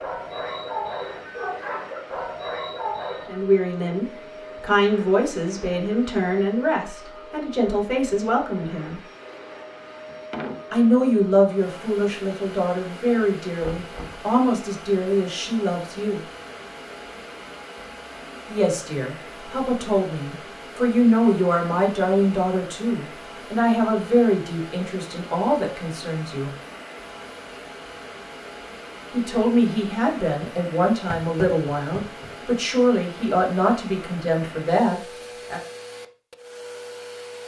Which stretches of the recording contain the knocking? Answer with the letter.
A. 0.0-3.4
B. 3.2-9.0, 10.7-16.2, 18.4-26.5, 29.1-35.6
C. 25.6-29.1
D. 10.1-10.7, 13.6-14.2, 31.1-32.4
D.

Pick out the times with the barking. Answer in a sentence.
The barking can be heard from 0.0 to 3.4 s.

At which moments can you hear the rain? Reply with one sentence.
You can't hear the rain here.